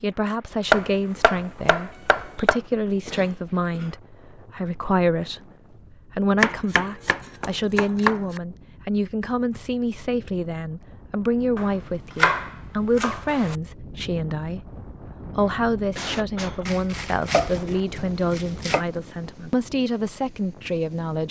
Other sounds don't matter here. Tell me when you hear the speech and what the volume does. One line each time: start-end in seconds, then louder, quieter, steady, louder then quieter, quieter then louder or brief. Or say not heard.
0.0-14.7 steady
15.3-21.2 steady.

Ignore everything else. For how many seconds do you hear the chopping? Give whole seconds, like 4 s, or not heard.
8 s.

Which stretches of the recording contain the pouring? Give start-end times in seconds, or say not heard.
not heard.